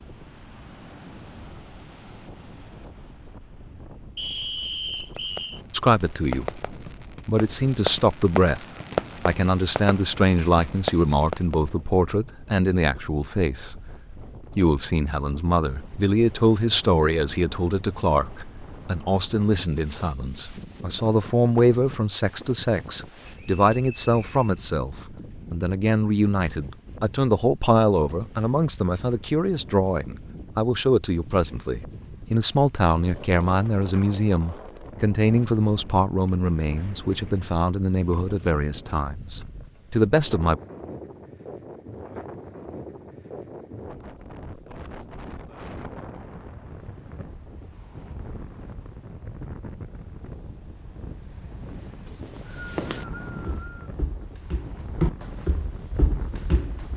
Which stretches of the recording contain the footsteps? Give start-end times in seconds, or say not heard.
52.2-56.9.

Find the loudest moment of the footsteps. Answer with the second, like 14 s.
55 s.